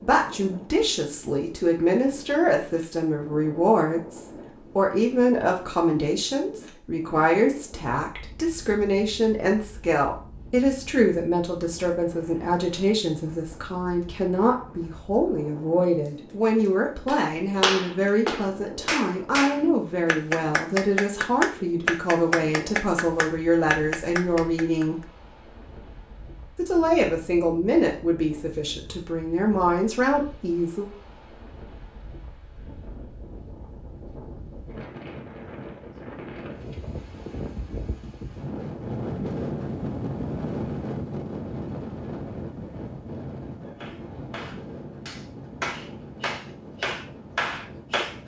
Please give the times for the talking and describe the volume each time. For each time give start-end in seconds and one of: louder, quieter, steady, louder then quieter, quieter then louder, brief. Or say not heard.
0.0-25.0 steady
26.6-30.9 quieter then louder.